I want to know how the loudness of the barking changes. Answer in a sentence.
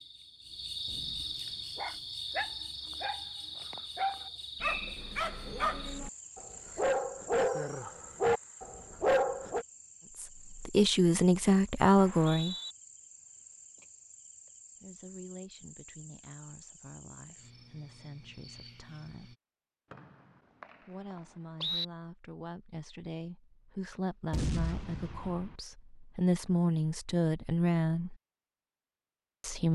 The loudness of the barking goes up.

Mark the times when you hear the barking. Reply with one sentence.
You can hear the barking from 1.8 to 9.7 s.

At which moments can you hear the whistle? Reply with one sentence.
You can hear the whistle from 4.6 to 5.0 s, from 11.9 to 12.8 s and from 19.9 to 21.9 s.